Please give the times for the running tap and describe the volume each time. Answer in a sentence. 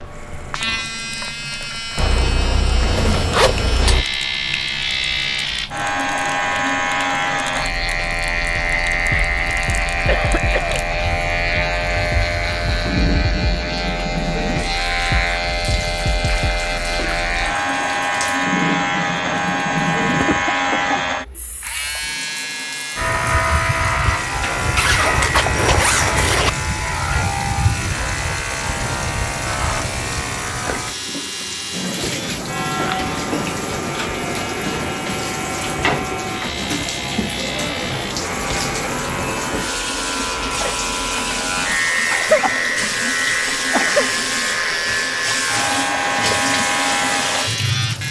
The running tap can be heard from 0.0 to 48.0 s, getting louder.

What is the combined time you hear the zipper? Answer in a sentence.
You can hear the zipper for 4 seconds altogether.